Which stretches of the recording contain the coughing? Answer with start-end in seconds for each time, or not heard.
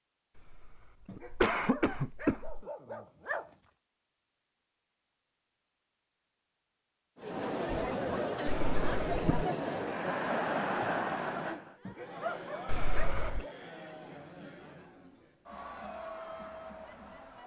0.3-2.6, 8.4-9.2, 12.7-13.4.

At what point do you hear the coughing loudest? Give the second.
2 s.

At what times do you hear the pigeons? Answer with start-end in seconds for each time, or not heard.
not heard.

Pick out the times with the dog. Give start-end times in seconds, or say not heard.
1.1-3.5, 11.8-13.6.